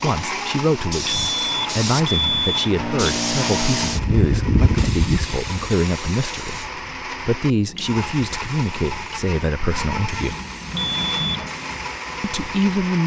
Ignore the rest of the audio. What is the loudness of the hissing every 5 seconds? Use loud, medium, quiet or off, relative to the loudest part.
loud, medium, medium.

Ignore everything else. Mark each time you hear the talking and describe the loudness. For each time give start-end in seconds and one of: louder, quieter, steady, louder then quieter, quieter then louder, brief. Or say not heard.
0.0-10.3 steady
12.2-13.0 brief.